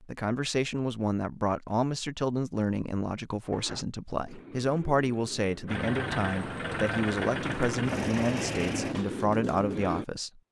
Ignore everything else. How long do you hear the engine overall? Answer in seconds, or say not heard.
3 s.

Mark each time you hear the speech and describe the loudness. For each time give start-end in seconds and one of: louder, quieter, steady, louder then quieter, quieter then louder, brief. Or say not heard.
0.0-10.4 steady.